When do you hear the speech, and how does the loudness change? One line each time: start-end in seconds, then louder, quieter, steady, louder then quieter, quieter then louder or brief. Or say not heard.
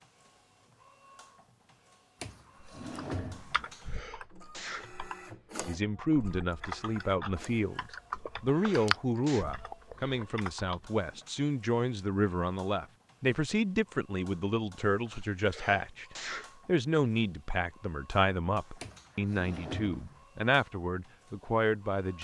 5.7-22.1 steady.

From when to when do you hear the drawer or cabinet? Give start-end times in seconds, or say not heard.
2.2-3.6, 18.8-20.2.